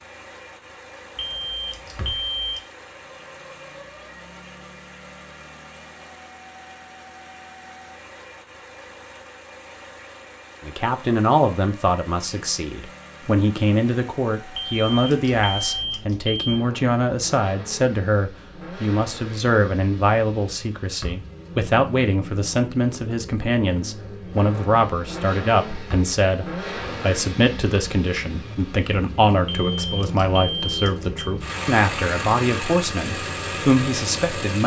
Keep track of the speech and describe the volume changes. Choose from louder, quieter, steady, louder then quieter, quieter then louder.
steady.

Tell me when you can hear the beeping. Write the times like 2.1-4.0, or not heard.
1.1-2.6, 14.6-16.6, 29.4-31.4.